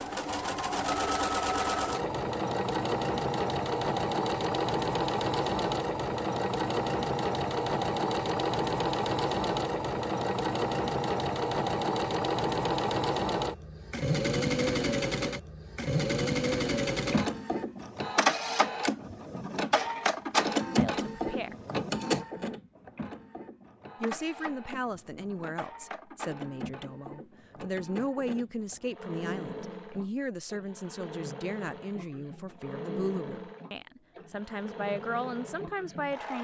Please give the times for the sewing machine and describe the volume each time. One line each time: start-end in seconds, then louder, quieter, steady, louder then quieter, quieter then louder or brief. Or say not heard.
0.0-36.3 quieter.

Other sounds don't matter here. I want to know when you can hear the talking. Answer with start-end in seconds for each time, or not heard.
20.8-21.6, 24.0-36.3.